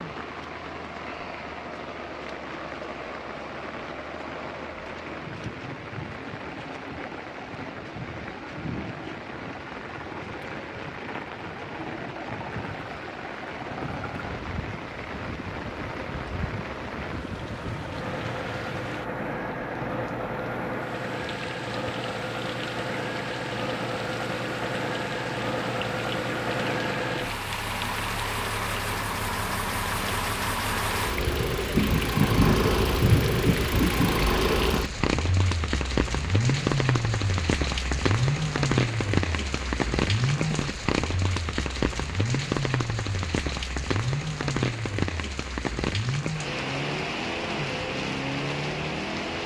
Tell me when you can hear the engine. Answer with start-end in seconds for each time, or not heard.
0.0-49.4.